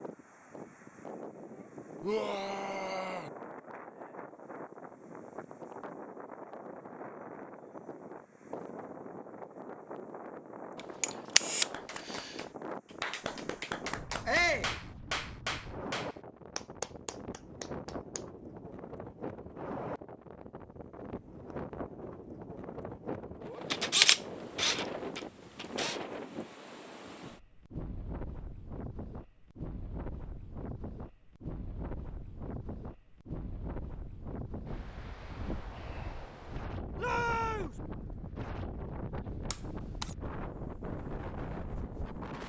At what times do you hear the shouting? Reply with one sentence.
You can hear the shouting from 2.0 to 3.3 s, from 14.2 to 14.7 s and from 37.0 to 37.8 s.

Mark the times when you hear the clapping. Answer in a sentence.
The clapping can be heard from 11.7 to 18.2 s.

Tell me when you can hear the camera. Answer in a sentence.
You can hear the camera from 11.0 to 12.3 s, from 23.7 to 26.0 s and from 39.5 to 40.1 s.